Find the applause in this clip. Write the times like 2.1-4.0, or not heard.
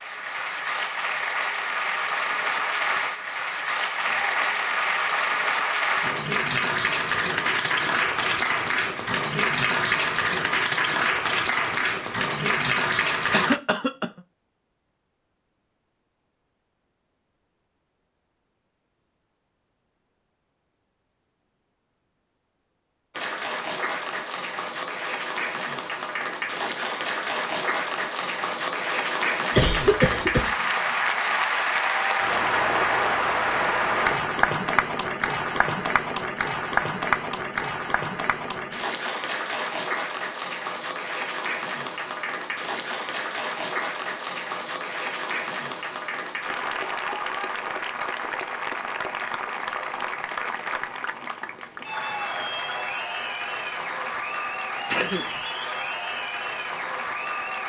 0.0-13.6, 23.1-57.6.